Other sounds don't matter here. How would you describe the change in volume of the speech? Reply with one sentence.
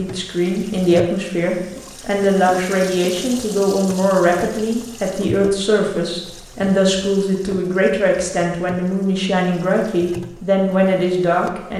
The loudness of the speech stays about the same.